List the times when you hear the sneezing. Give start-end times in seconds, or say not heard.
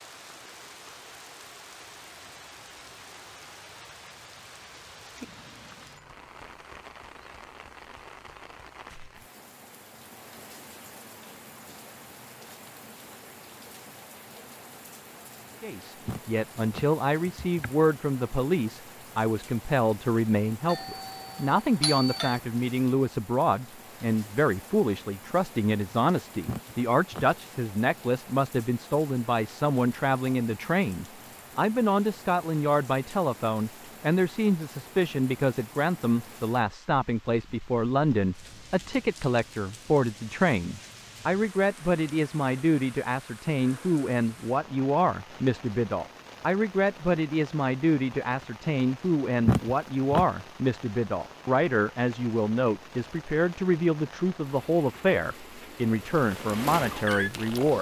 16.1-17.7, 26.4-27.2, 49.5-50.2.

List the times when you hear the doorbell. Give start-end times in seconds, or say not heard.
20.6-22.4.